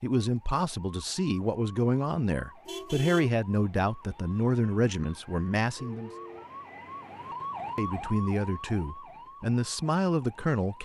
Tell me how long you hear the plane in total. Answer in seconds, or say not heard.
not heard.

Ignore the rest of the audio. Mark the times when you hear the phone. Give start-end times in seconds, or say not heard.
5.8-6.5.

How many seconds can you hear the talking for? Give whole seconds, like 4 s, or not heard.
9 s.